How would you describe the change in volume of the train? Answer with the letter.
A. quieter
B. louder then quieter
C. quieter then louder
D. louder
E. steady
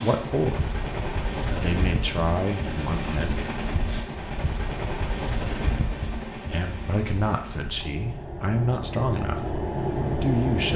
C.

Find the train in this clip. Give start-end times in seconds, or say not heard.
0.0-10.7.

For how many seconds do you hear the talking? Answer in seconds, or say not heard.
6 s.